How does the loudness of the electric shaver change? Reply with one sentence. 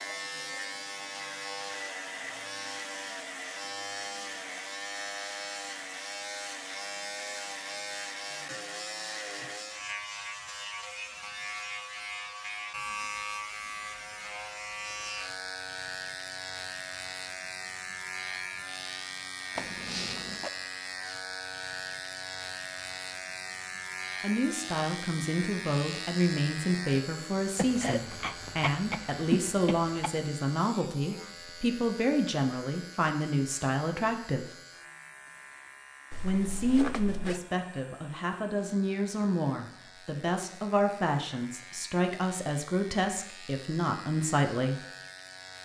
The loudness of the electric shaver goes down.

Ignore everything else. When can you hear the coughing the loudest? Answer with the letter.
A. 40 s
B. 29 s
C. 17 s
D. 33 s
B.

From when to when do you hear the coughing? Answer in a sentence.
You can hear the coughing from 27.6 to 30.1 s.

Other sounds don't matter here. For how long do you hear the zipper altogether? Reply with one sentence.
You can hear the zipper for 2 seconds altogether.